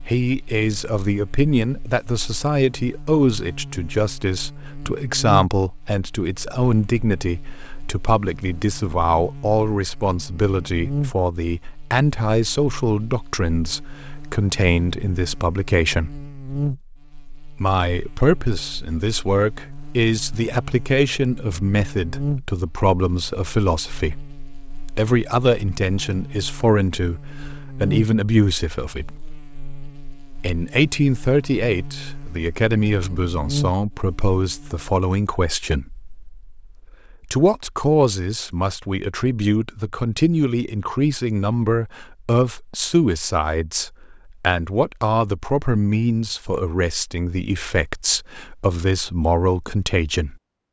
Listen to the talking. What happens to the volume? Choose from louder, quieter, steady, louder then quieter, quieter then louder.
steady.